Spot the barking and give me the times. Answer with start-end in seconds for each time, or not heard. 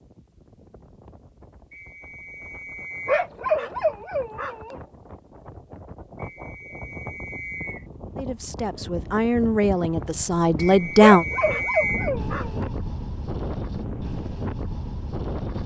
3.0-4.8, 11.0-12.7.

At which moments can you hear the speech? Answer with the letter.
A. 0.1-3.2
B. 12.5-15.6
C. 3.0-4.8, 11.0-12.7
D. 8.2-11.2
D.